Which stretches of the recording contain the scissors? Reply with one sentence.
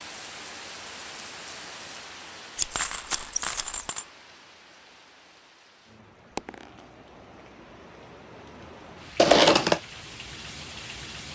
The scissors can be heard from 2.5 to 3.9 s and from 9.2 to 9.8 s.